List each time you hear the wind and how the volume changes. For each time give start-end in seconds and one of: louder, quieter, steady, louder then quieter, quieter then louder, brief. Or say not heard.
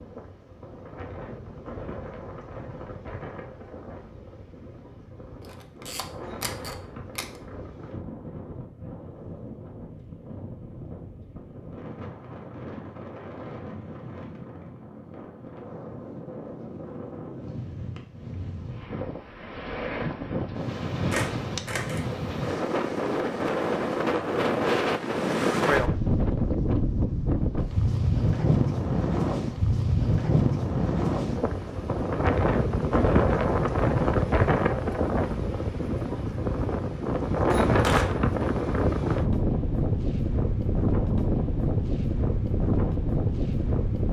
0.0-44.0 louder.